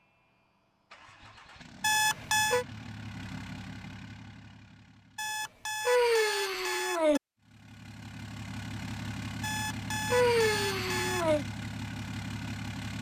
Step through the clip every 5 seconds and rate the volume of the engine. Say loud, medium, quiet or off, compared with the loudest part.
medium, loud, loud.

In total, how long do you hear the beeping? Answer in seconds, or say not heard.
5 s.